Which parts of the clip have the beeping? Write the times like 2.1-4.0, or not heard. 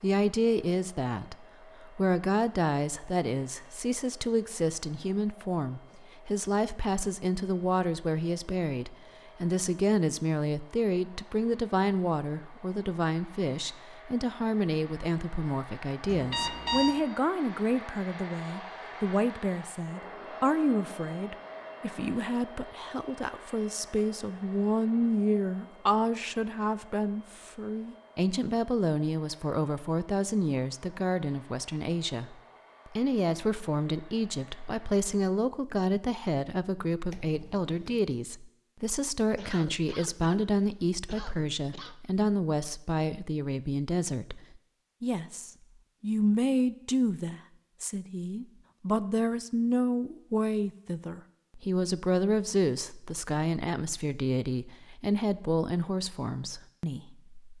16.1-16.9, 37.1-38.0.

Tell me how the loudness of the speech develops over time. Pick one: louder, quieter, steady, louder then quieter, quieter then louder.
steady.